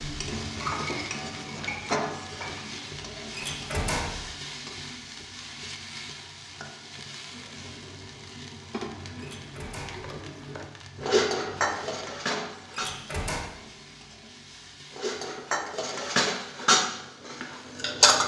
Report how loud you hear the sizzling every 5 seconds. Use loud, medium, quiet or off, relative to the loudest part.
loud, medium, medium, quiet.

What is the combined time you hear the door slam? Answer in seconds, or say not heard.
3 s.